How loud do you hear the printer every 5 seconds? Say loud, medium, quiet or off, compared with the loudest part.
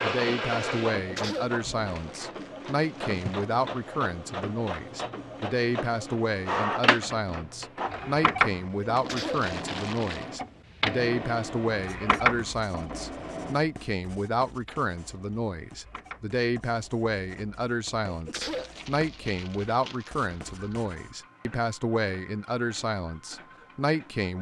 loud, loud, loud, quiet, quiet.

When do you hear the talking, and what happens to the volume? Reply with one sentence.
The talking can be heard from 0.0 to 24.3 s, at a steady volume.